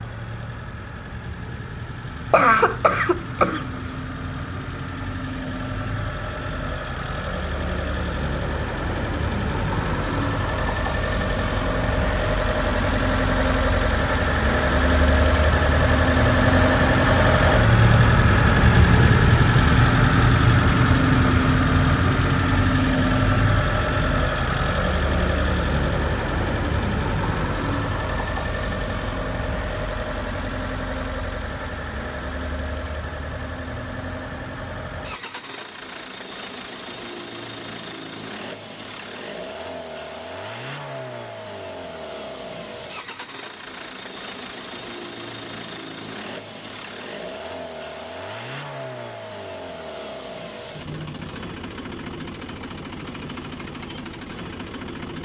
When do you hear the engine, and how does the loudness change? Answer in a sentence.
The engine can be heard from 0.0 to 55.1 s, getting louder then quieter.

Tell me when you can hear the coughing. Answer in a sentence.
The coughing can be heard from 2.3 to 3.6 s.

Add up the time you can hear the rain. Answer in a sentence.
You can't hear the rain here.